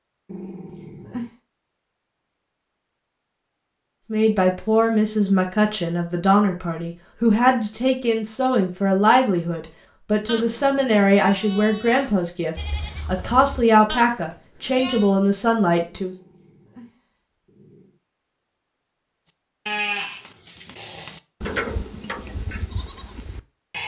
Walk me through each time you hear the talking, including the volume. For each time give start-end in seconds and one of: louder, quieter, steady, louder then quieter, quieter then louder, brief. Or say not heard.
4.1-16.1 steady.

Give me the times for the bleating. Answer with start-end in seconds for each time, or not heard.
10.2-15.1, 19.6-23.8.